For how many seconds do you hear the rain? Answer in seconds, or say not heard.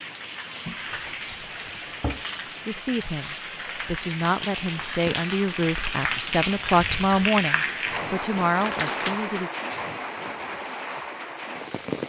12 s.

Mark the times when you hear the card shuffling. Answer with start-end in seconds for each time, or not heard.
0.7-2.3, 5.0-5.8, 8.6-10.2.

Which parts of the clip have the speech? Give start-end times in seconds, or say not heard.
2.6-9.5.